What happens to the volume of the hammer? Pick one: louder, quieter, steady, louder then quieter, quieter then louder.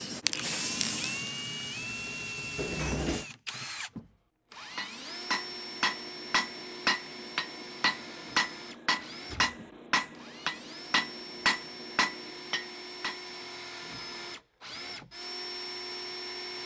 steady.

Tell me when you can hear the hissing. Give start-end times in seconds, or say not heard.
0.0-2.9.